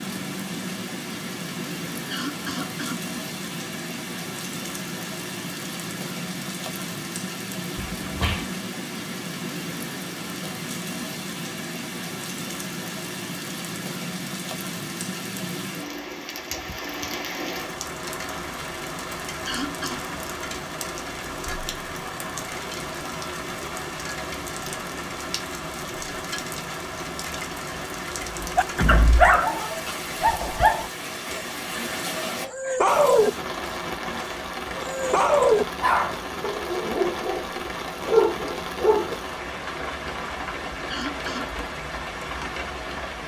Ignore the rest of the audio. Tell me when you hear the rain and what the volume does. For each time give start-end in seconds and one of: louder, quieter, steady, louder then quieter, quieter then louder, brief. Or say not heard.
0.0-43.2 steady.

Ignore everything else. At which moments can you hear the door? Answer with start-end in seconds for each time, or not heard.
7.8-8.5, 28.8-29.4.